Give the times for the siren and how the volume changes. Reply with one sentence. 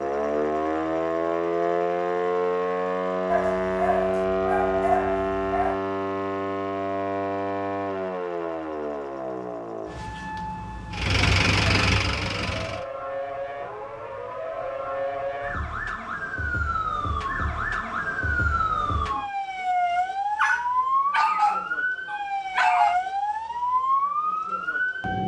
You can hear the siren from 0.0 to 25.2 s, getting quieter then louder.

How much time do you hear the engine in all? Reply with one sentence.
The engine can be heard for 2 seconds in total.